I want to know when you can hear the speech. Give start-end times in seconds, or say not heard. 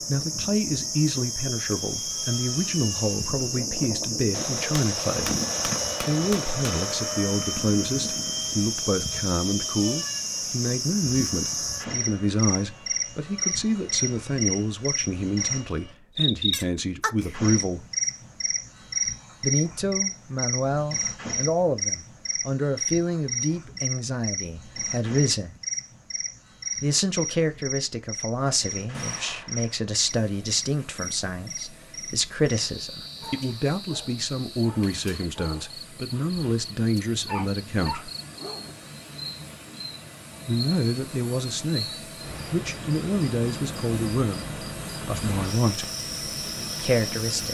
0.1-5.3, 6.0-17.9, 19.4-25.6, 26.8-38.1, 40.5-45.9, 46.8-47.4.